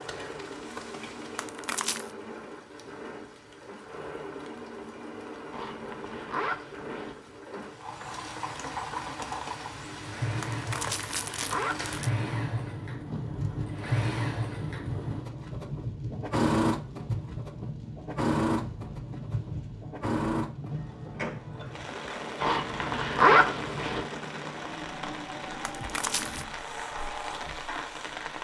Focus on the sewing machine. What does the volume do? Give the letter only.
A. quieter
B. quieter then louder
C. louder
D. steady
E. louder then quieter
E.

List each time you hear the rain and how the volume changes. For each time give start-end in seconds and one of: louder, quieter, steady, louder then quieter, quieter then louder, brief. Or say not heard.
0.0-28.3 louder.